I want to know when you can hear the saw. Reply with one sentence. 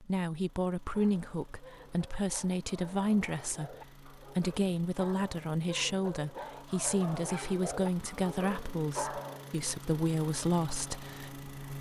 The saw can't be heard in this clip.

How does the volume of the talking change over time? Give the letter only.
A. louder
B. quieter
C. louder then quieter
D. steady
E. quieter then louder
D.